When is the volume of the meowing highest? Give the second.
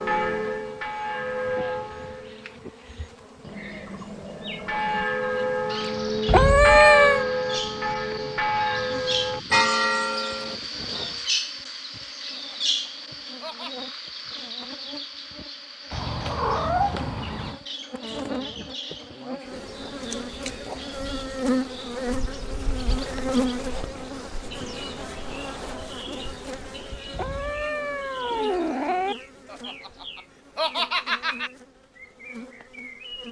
7 s.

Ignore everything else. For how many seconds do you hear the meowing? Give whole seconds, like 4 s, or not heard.
5 s.